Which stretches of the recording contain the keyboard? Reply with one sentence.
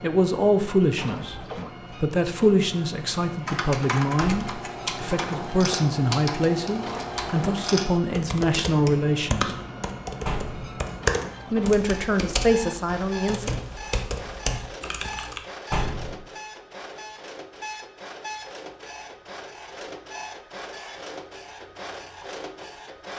You can hear the keyboard from 3.5 to 15.4 s.